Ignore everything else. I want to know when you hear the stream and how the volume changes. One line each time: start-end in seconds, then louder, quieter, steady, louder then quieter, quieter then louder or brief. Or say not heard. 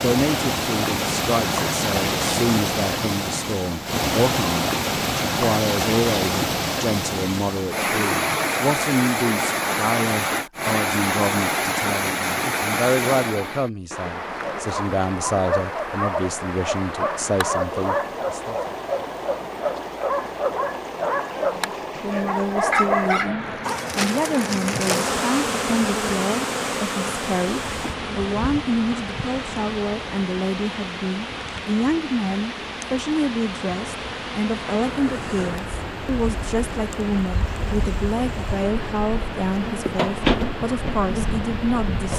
0.0-42.1 quieter.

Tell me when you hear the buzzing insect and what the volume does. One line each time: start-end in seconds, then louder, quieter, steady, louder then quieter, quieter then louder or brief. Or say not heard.
23.6-42.1 quieter then louder.